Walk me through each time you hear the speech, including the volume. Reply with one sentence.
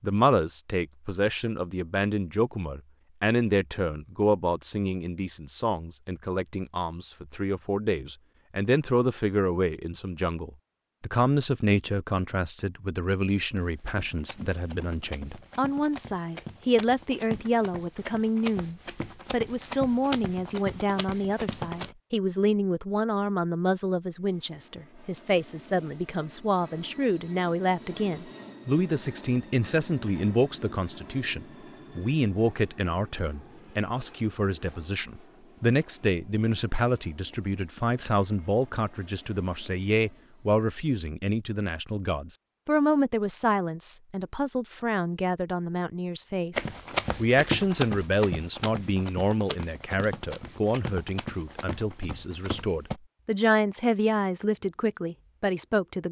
The speech can be heard from 0.0 to 56.0 s, at a steady volume.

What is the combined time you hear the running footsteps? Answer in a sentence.
You can hear the running footsteps for 15 seconds altogether.